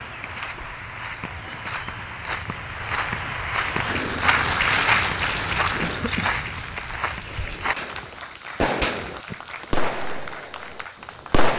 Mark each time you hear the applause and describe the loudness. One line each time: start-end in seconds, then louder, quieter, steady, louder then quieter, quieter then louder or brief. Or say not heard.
0.0-11.5 louder then quieter.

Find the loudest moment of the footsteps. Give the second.
5 s.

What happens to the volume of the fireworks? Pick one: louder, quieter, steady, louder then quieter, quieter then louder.
louder then quieter.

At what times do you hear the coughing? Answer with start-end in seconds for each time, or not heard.
5.8-6.4.